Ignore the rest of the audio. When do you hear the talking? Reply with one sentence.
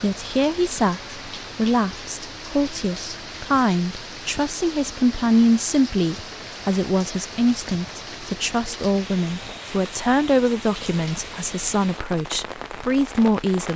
The talking can be heard from 0.0 to 13.7 s.